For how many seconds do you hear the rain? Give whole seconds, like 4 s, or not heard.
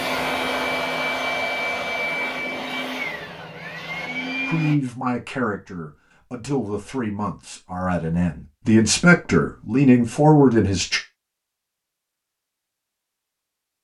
not heard.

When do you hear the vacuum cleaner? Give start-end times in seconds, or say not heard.
0.0-4.8.